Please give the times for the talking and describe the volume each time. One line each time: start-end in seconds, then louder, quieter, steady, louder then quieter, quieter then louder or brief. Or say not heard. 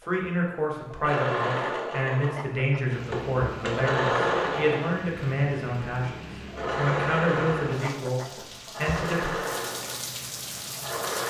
0.1-9.3 steady.